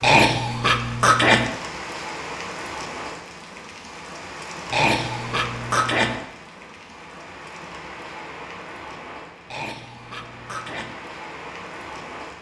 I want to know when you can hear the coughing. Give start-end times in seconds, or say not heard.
0.0-1.5, 4.7-6.2, 9.4-10.9.